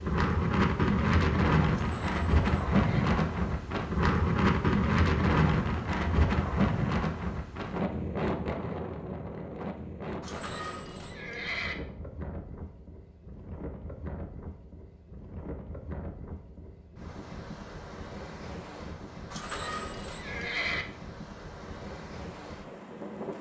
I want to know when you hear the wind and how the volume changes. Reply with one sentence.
You can hear the wind from 0.0 to 23.3 s, getting quieter.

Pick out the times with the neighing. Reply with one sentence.
The neighing can be heard from 1.7 to 3.0 s, from 10.2 to 11.8 s and from 19.3 to 20.9 s.